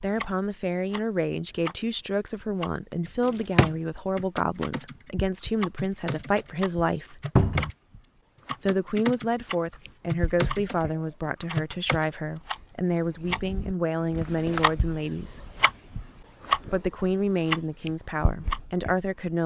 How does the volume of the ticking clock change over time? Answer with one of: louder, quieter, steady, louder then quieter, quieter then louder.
louder.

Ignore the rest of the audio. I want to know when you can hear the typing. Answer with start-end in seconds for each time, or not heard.
4.2-5.1, 5.8-7.8, 8.4-9.2, 10.1-12.1.